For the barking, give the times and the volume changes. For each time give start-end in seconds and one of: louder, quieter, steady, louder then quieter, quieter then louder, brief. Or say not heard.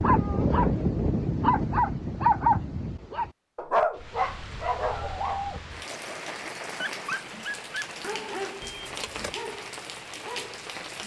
0.0-10.7 quieter.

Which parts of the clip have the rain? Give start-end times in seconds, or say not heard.
3.9-11.0.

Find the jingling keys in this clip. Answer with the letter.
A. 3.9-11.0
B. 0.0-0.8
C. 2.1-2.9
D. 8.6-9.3
D.